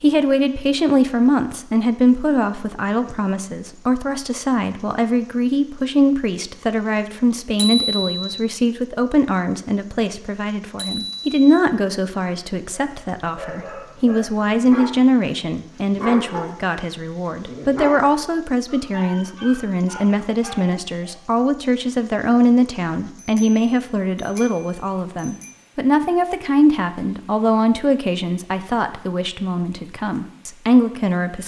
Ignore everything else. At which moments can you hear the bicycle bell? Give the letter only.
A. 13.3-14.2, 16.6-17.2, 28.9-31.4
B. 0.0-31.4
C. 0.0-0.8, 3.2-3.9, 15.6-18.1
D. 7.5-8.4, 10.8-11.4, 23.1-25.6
D.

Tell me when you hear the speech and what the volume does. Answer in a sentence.
You can hear the speech from 0.0 to 31.4 s, at a steady volume.